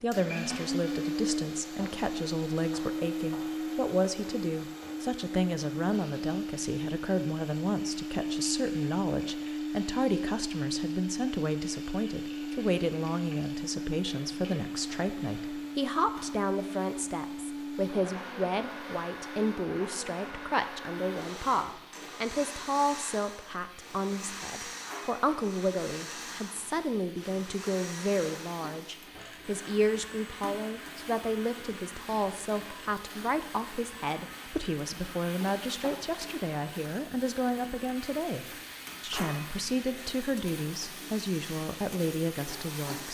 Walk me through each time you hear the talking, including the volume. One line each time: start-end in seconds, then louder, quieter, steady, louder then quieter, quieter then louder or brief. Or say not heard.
0.0-43.0 steady.